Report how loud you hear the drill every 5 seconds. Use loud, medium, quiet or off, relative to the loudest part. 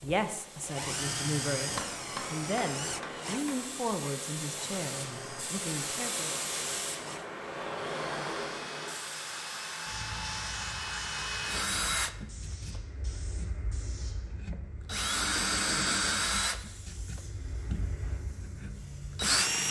medium, medium, medium, loud.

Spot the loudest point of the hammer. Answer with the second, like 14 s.
2 s.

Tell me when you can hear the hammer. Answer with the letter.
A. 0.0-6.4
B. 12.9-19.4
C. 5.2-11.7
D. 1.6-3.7
D.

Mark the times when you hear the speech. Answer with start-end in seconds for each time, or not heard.
0.0-6.4.